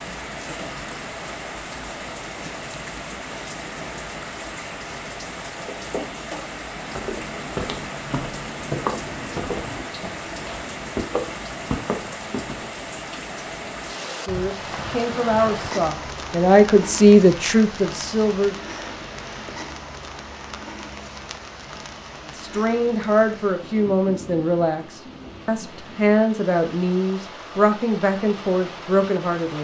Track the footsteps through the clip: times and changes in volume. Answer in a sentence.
The footsteps can be heard from 6.8 to 12.7 s, at a steady volume.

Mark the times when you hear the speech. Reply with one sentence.
The speech can be heard from 14.1 to 18.6 s and from 22.2 to 29.5 s.